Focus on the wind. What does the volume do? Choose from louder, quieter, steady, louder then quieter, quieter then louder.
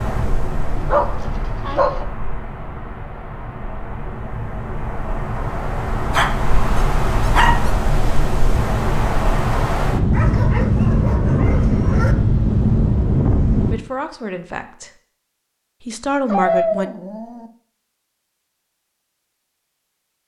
louder.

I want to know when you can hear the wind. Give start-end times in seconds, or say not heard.
0.0-13.8.